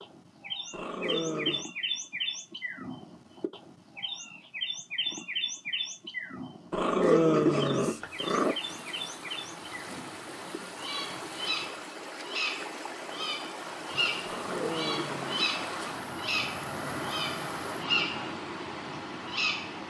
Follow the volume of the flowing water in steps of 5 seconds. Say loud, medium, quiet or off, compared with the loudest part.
off, medium, loud, loud.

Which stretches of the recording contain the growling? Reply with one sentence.
The growling can be heard from 0.7 to 1.6 s, from 6.7 to 8.6 s and from 14.2 to 15.9 s.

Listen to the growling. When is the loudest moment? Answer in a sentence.
The volume of the growling peaks at 7 seconds.